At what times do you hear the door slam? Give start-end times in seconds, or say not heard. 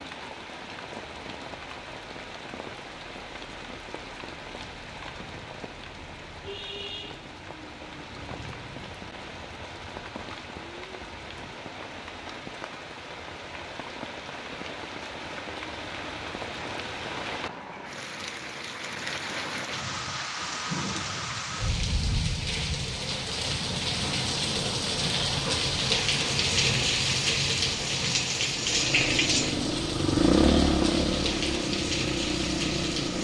not heard.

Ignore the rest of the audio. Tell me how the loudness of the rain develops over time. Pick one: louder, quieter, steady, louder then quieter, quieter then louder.
louder.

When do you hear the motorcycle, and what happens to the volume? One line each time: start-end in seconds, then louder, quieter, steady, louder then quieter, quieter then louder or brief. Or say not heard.
28.6-33.1 louder then quieter.